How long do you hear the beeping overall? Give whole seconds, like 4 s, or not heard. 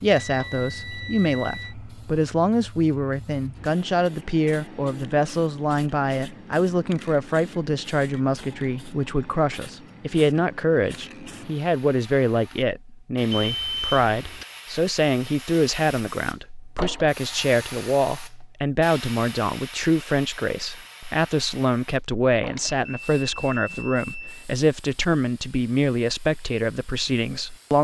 5 s.